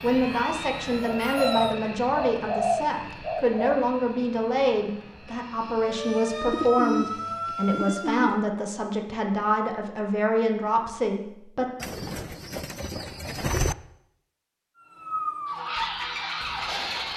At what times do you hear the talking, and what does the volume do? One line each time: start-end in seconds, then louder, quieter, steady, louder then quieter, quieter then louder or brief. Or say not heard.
0.0-11.7 steady.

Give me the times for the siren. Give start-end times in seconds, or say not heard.
0.0-1.8, 5.8-8.3, 14.8-17.1.